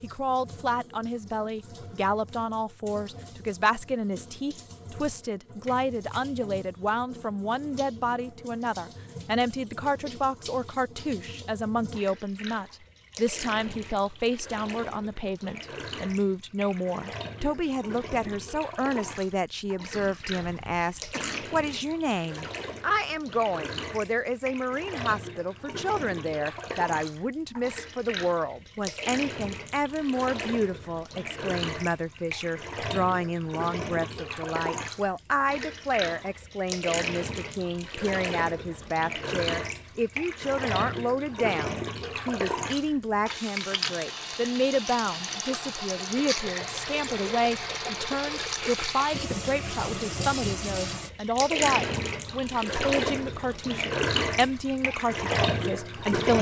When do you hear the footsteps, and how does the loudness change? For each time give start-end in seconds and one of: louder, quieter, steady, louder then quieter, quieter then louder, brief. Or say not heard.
not heard.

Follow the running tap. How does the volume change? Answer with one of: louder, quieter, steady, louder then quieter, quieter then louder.
louder.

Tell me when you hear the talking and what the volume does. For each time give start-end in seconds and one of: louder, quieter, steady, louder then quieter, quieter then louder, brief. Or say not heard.
0.0-56.3 steady.